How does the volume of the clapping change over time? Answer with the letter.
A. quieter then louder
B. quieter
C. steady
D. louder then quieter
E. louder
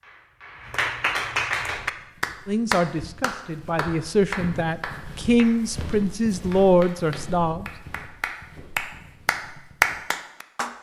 A.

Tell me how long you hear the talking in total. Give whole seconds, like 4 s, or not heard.
5 s.